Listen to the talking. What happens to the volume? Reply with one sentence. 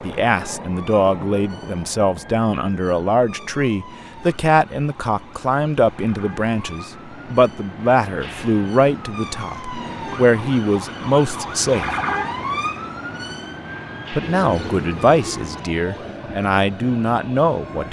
The loudness of the talking stays about the same.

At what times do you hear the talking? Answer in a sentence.
You can hear the talking from 0.0 to 11.9 s and from 14.1 to 17.8 s.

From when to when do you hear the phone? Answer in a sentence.
You can't hear the phone here.